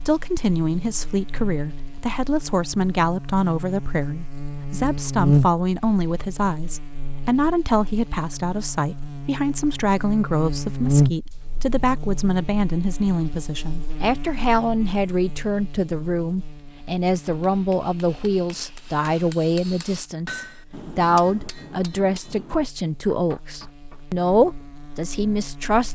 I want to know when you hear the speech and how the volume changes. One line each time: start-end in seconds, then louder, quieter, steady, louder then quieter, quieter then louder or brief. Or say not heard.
0.1-25.9 steady.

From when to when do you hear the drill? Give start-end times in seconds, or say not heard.
not heard.